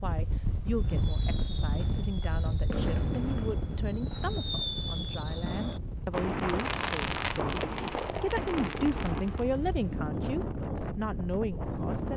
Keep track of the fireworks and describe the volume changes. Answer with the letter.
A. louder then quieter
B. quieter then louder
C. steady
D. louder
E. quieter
D.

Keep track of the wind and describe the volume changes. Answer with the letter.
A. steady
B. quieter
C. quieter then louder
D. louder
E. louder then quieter
C.